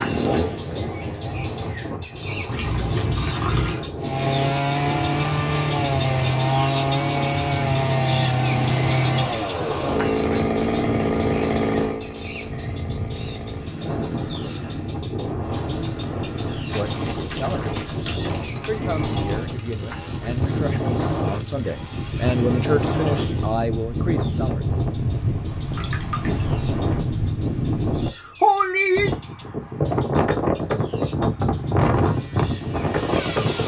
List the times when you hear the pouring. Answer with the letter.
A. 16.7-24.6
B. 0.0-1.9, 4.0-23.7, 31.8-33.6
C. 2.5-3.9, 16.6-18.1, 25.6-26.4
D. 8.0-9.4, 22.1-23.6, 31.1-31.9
C.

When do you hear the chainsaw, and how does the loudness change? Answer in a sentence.
You can hear the chainsaw briefly from 0.0 to 1.9 s; from 4.0 to 23.7 s, getting quieter; and briefly from 31.8 to 33.6 s.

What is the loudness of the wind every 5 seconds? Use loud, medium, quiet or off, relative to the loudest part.
medium, medium, medium, medium, loud, loud, loud.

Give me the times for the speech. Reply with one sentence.
The speech can be heard from 16.7 to 24.6 s.